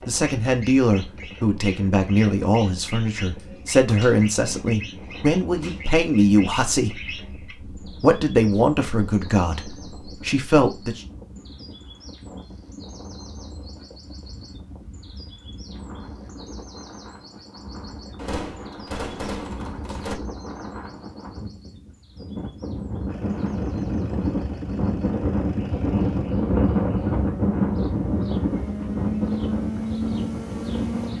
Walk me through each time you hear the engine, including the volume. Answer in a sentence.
The engine can be heard from 23.1 to 31.1 s, getting louder.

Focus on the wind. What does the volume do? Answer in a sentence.
The loudness of the wind goes up.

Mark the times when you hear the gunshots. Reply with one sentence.
The gunshots can be heard from 3.4 to 4.7 s, from 5.6 to 6.0 s and from 18.1 to 20.1 s.